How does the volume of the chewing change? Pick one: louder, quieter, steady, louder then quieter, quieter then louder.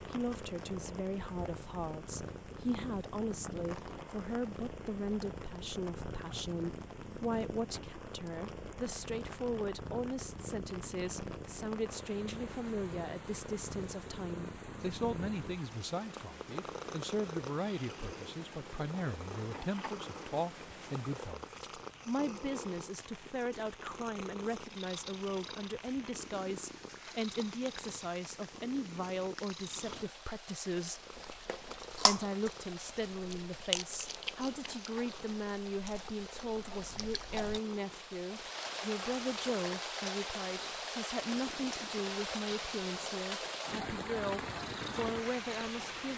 quieter.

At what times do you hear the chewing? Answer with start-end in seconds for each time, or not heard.
31.1-37.6.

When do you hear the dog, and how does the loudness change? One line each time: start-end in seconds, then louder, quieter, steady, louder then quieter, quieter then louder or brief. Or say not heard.
not heard.